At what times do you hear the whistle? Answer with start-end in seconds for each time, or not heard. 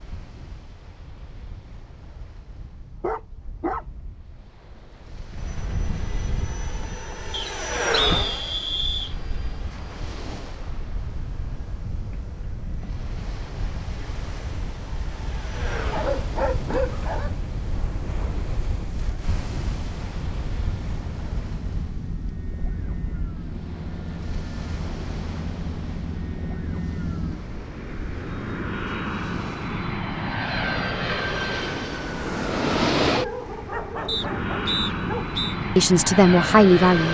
7.3-9.2, 34.0-35.5.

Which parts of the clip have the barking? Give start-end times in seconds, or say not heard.
2.6-3.9, 15.9-17.4, 33.0-35.4.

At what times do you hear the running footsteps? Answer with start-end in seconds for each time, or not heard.
not heard.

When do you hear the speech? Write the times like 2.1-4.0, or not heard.
35.8-37.1.